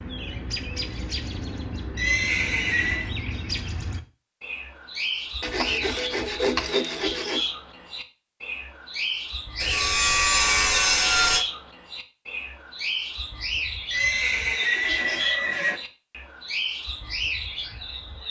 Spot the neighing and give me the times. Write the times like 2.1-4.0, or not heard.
1.9-3.1, 13.9-15.8.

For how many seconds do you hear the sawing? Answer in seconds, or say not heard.
4 s.